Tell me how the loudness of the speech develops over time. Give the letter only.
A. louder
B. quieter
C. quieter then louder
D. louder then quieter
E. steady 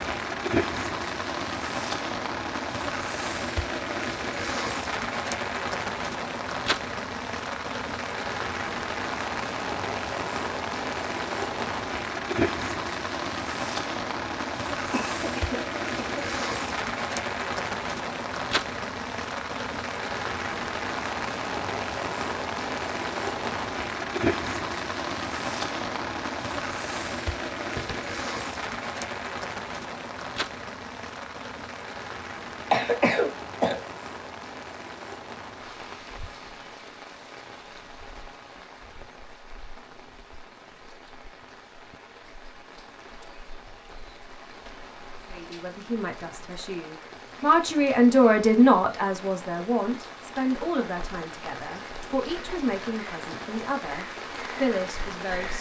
D.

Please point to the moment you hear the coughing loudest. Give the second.
33 s.